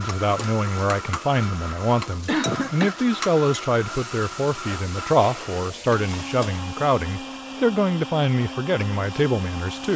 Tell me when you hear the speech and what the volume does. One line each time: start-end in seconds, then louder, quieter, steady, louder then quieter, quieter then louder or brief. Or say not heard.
0.0-9.9 steady.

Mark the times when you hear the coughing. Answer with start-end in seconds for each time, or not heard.
2.2-3.0, 5.2-6.0.